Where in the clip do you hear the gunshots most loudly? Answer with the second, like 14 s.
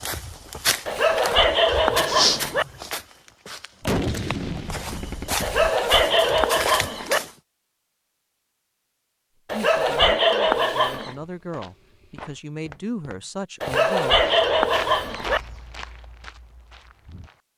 4 s.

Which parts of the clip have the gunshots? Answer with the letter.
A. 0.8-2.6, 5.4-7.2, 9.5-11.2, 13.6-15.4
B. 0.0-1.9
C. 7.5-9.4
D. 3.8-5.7
D.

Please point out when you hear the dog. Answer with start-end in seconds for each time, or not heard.
0.8-2.6, 5.4-7.2, 9.5-11.2, 13.6-15.4.